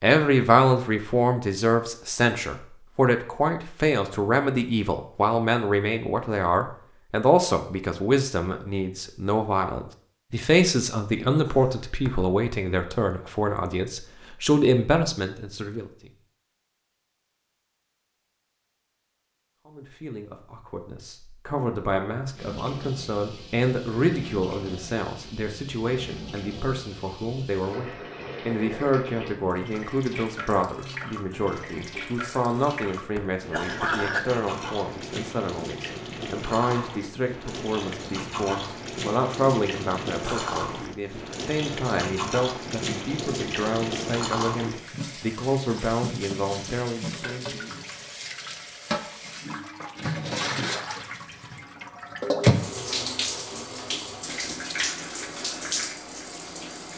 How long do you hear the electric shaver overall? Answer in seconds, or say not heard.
not heard.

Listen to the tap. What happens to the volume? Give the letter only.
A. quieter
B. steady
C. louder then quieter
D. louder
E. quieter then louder
D.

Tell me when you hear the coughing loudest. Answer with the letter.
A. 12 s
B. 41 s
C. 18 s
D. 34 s
D.